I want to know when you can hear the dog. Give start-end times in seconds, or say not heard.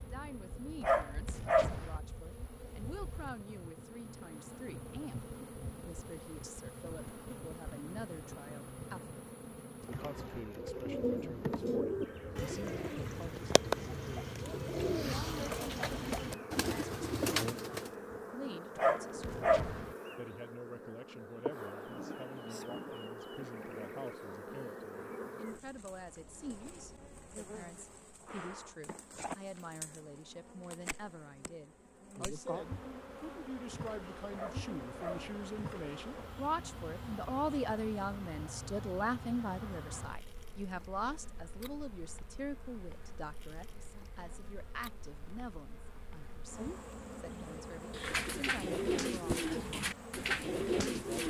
0.8-2.0, 18.8-19.9, 34.4-35.5.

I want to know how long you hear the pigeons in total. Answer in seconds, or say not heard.
11 s.